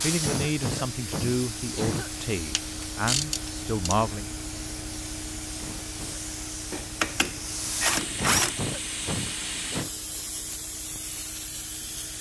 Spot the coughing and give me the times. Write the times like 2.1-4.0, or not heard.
0.2-2.1, 5.5-6.2, 8.2-9.9.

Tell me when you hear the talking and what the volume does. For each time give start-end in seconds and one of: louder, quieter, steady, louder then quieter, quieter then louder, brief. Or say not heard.
0.0-4.2 steady.